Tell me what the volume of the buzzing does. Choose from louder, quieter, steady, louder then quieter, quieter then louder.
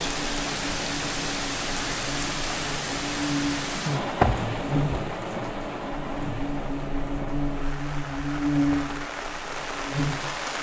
louder.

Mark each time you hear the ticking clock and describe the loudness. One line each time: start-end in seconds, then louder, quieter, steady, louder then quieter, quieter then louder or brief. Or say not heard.
not heard.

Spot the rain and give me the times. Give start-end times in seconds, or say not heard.
0.0-10.5.